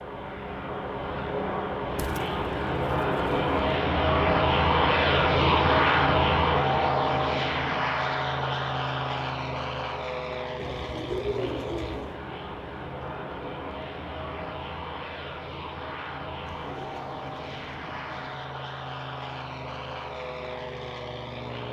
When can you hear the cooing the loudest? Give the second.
11 s.